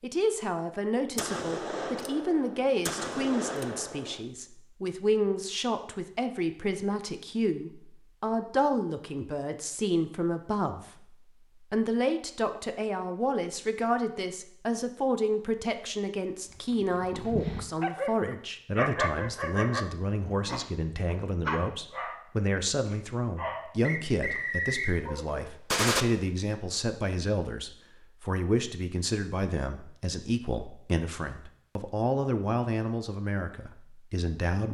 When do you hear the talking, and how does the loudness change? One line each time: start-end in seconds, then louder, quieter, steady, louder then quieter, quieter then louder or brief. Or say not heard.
0.0-34.6 steady.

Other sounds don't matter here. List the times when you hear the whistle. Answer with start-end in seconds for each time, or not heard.
23.8-24.9.